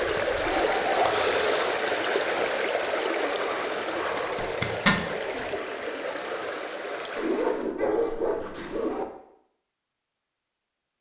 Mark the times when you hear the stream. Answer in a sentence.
The stream can be heard from 0.0 to 7.8 s.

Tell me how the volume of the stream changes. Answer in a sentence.
The volume of the stream goes down.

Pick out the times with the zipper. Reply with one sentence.
You can hear the zipper from 4.2 to 5.0 s.